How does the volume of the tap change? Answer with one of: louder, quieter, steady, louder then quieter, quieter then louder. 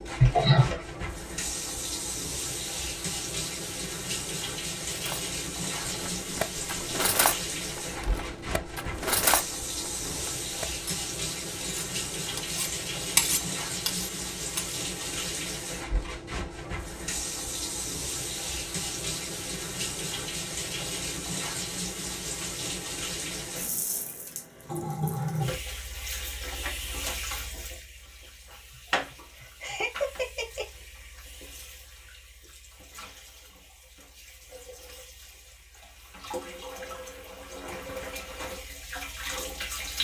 quieter.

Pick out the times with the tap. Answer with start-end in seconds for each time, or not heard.
0.0-39.9.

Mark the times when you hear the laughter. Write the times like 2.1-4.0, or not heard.
0.2-0.8, 29.4-30.6.